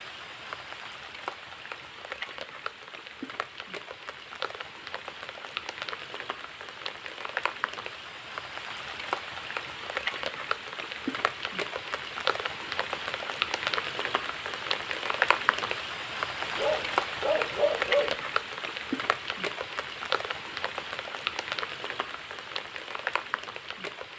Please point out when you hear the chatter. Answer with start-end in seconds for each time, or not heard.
not heard.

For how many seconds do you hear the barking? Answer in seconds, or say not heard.
2 s.